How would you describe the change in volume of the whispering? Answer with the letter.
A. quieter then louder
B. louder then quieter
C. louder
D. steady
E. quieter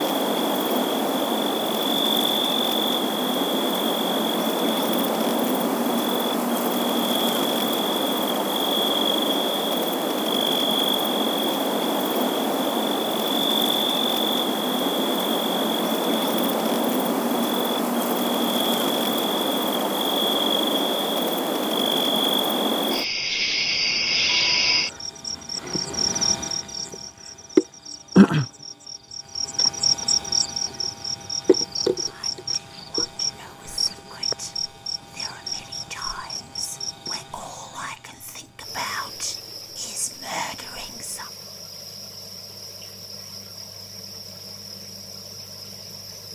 C.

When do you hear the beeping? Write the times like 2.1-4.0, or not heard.
not heard.